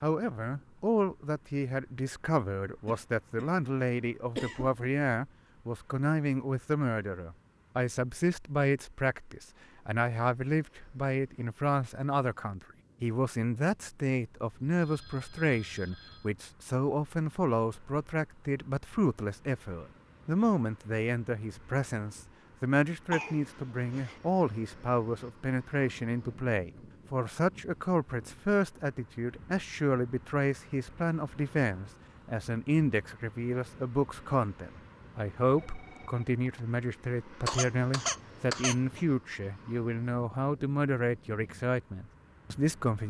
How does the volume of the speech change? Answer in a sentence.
The volume of the speech stays about the same.